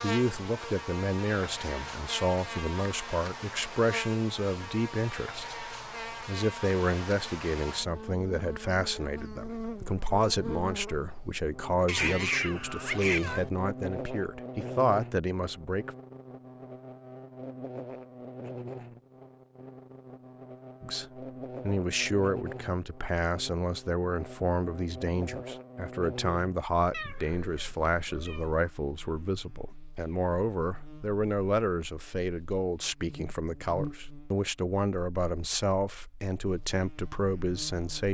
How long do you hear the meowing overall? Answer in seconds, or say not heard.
3 s.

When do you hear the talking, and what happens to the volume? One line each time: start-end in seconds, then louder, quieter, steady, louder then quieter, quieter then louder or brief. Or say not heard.
0.0-15.9 steady
20.8-38.0 steady.